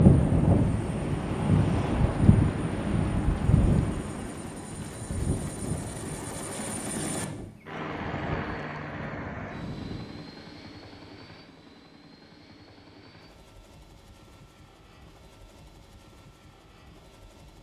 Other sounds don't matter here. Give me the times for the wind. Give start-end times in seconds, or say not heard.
0.0-10.2.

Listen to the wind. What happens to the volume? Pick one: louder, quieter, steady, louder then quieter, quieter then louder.
quieter.